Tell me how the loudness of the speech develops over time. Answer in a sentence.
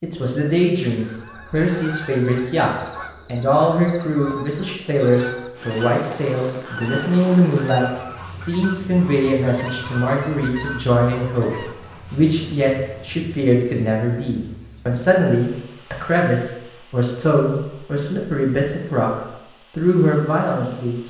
The loudness of the speech stays about the same.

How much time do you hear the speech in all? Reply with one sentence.
You can hear the speech for 21 seconds altogether.